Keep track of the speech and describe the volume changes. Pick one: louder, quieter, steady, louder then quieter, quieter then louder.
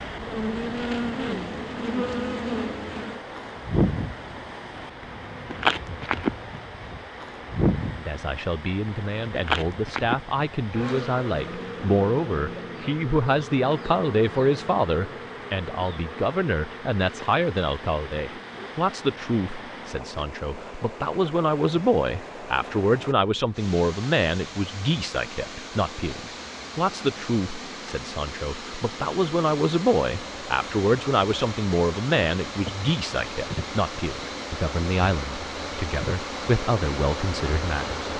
steady.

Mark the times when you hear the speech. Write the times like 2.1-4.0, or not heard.
8.0-38.0.